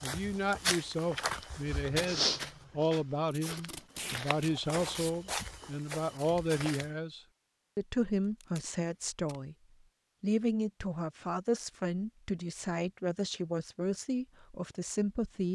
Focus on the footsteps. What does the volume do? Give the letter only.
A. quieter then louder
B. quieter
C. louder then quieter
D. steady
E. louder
A.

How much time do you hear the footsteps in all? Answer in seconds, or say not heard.
7 s.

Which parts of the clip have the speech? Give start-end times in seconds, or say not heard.
0.0-9.6, 10.2-15.4.